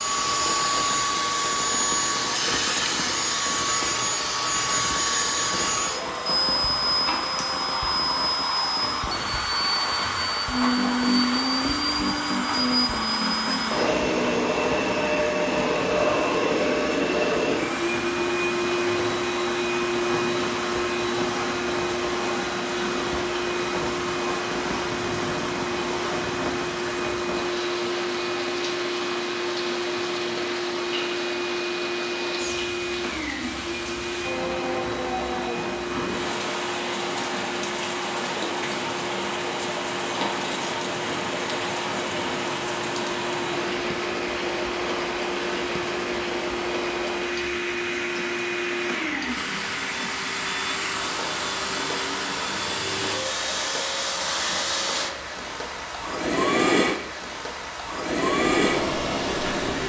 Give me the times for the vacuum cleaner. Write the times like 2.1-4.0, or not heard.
0.0-59.8.